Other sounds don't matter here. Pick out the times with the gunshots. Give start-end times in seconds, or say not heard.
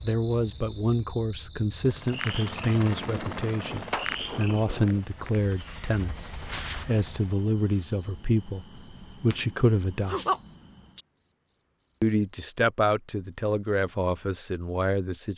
3.0-5.0.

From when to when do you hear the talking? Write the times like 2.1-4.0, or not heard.
0.0-10.2, 12.0-15.3.